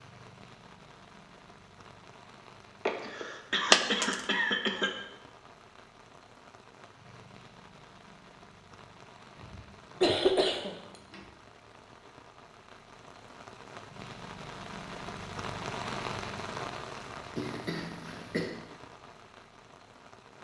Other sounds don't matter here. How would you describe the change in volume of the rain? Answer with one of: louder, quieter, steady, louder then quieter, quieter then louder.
louder.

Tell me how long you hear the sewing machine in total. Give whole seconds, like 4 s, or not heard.
not heard.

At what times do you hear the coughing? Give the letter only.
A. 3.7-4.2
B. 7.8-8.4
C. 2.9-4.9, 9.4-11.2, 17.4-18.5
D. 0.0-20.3
C.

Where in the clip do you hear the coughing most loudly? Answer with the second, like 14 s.
10 s.